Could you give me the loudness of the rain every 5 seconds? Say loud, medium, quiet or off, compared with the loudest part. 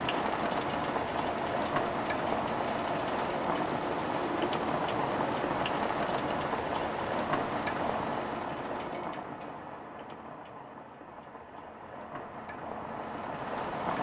loud, loud, medium.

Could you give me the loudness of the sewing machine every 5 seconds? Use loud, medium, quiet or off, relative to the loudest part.
loud, loud, off.